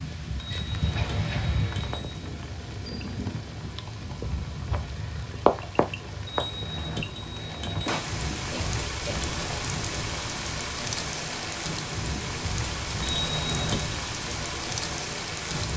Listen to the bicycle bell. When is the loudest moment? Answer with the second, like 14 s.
14 s.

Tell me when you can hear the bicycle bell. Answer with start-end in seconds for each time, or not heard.
0.3-2.2, 6.2-7.9, 13.0-14.0.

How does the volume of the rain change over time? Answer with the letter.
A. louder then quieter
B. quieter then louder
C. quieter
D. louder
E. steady
E.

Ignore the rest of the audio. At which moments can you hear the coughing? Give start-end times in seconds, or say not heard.
0.9-1.6, 8.5-9.3.